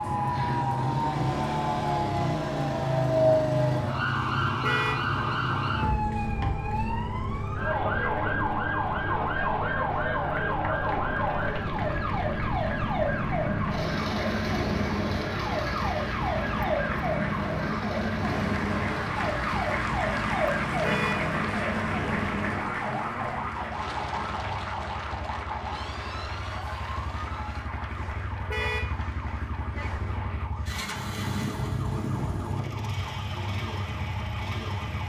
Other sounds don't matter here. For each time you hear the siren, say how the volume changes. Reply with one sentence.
You can hear the siren from 0.0 to 35.0 s, getting quieter.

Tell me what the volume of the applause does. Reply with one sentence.
The loudness of the applause goes up, then down.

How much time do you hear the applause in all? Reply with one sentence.
The applause can be heard for 20 seconds in total.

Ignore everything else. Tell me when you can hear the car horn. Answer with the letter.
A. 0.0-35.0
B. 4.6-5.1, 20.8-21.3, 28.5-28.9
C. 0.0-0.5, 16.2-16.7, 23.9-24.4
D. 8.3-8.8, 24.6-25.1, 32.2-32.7
B.